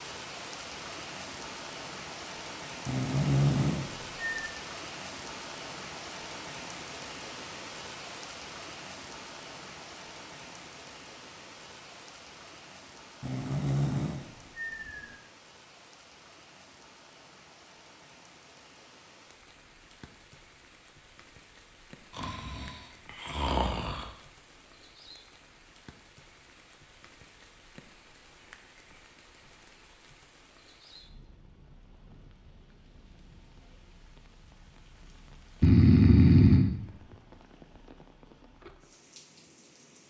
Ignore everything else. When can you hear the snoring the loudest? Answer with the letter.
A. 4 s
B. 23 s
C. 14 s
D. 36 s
D.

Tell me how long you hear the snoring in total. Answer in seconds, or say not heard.
7 s.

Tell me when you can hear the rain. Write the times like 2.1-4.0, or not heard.
0.0-40.0.